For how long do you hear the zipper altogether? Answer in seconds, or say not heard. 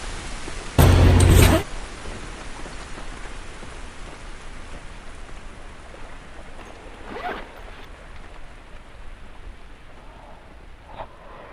2 s.